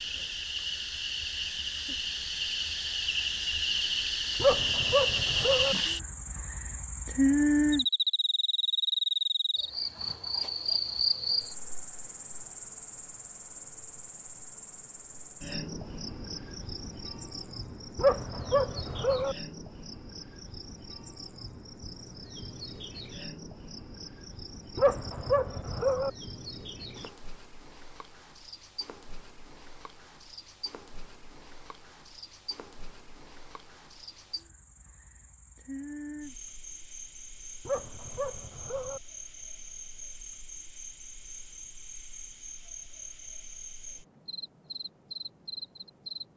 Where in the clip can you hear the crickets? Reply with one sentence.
The crickets can be heard from 0.0 to 46.3 s.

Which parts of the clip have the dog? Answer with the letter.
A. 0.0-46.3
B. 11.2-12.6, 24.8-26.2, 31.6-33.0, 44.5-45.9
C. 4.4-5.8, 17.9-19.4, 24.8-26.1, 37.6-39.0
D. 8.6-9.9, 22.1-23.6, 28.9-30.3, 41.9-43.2
C.